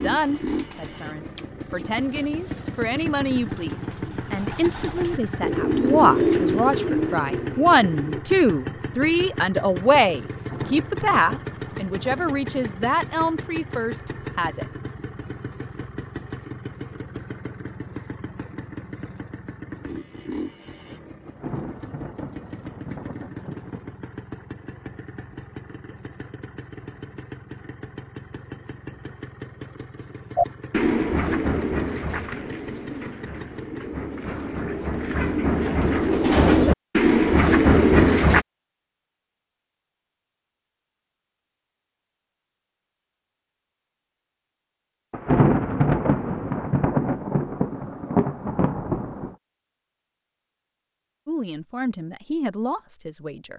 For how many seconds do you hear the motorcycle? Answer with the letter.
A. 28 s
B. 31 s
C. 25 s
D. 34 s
D.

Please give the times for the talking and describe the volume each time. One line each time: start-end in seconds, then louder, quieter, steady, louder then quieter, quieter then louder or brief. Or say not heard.
0.0-14.7 louder then quieter
51.2-53.5 brief.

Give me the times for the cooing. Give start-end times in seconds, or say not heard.
0.1-8.2, 30.4-38.5.